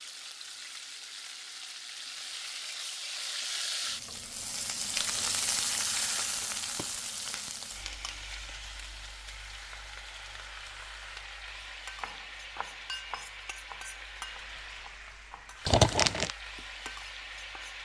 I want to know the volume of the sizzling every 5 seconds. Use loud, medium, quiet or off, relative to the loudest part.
loud, loud, medium, medium.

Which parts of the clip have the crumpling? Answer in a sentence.
The crumpling can be heard from 5.0 to 5.5 s and from 15.7 to 16.3 s.